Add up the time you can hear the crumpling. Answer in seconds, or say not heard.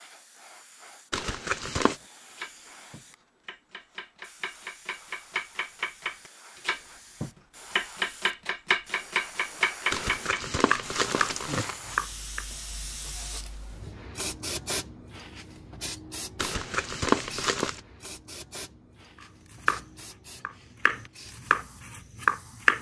4 s.